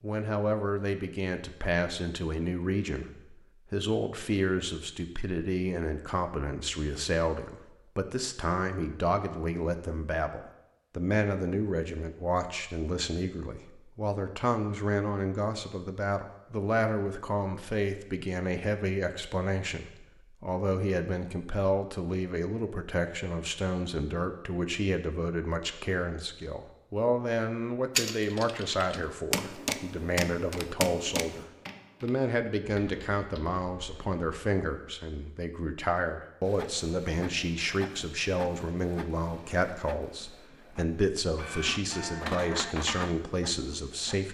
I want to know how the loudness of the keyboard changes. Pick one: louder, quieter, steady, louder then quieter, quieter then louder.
quieter.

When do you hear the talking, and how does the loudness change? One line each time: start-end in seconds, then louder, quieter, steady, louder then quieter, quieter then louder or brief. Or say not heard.
0.0-44.3 steady.